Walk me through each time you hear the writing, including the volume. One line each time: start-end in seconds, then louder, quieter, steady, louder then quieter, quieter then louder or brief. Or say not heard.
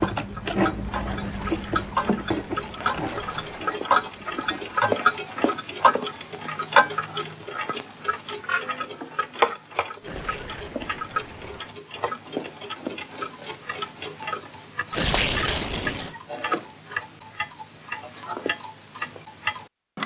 0.0-5.0 quieter.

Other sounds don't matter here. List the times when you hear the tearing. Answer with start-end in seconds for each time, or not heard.
1.2-3.7, 10.0-11.8, 14.9-16.1.